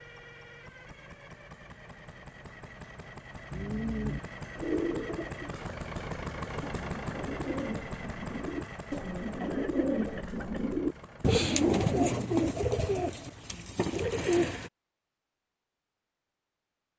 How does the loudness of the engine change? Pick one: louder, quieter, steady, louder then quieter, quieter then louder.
louder then quieter.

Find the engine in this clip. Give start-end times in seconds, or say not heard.
0.0-13.6.